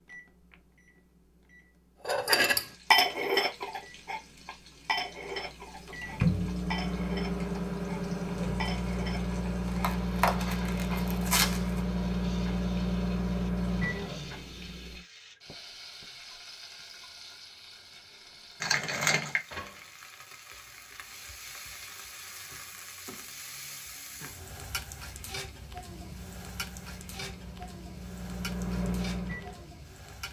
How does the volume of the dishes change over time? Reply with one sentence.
The loudness of the dishes goes down.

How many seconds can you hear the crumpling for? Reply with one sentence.
You can hear the crumpling for 3 seconds altogether.